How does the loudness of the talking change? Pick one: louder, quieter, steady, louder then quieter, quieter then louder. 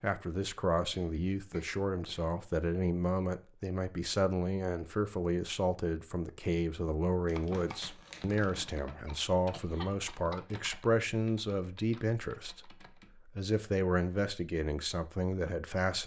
steady.